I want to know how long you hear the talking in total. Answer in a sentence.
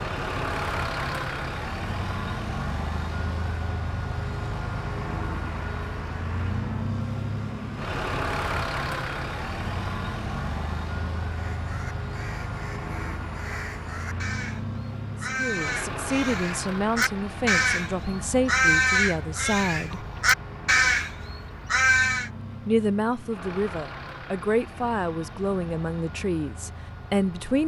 You can hear the talking for 10 seconds altogether.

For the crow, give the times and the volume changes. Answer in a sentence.
The crow can be heard from 11.3 to 22.3 s, getting louder.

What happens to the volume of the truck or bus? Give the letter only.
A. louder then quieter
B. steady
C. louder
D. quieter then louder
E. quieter
E.